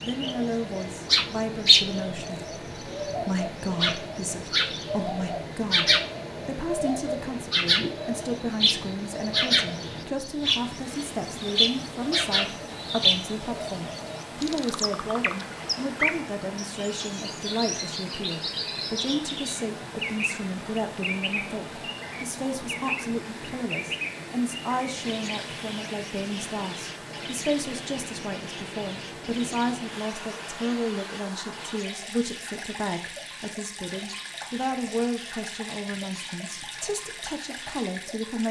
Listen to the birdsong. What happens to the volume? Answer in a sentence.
The volume of the birdsong goes down.